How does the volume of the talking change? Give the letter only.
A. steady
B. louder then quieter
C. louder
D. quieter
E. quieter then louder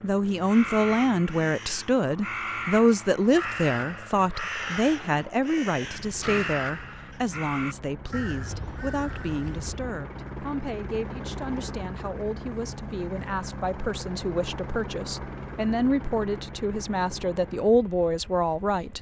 E.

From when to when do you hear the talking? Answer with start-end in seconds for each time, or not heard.
0.0-18.9.